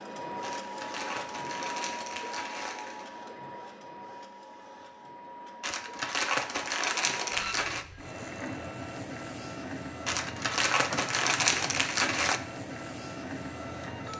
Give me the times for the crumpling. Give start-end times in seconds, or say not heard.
0.4-3.0, 5.6-7.8, 10.1-12.4.